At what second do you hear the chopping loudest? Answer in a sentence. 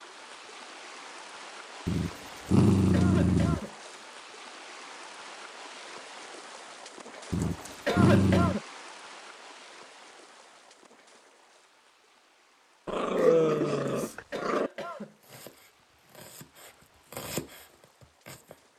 The volume of the chopping peaks at 17 seconds.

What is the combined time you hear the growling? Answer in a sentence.
You can hear the growling for 5 seconds altogether.